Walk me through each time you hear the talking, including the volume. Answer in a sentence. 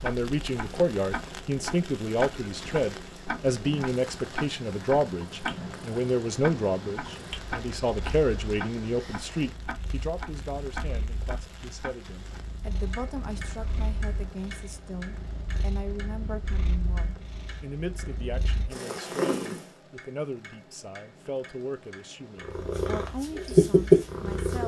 You can hear the talking from 0.0 to 24.6 s, getting quieter.